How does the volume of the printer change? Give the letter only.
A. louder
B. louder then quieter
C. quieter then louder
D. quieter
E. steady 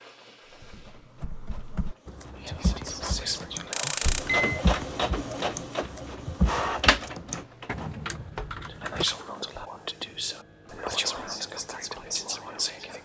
B.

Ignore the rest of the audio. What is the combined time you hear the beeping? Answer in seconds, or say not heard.
2 s.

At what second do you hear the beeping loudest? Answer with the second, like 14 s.
4 s.